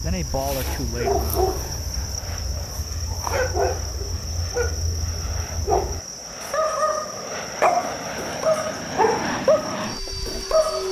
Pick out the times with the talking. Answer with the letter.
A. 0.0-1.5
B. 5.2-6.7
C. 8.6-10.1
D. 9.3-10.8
A.